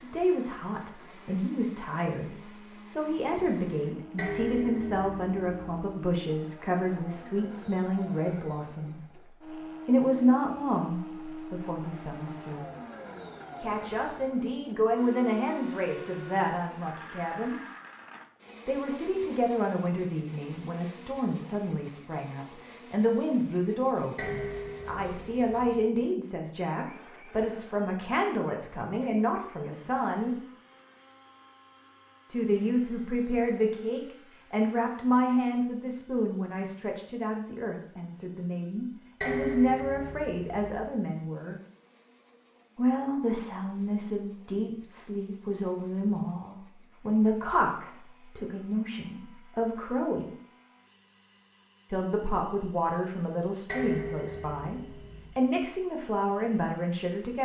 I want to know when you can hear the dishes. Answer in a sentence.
The dishes can be heard from 4.2 to 5.5 s, from 24.1 to 25.8 s, from 39.2 to 40.8 s and from 53.6 to 55.4 s.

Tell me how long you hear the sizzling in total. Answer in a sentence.
The sizzling can't be heard in this clip.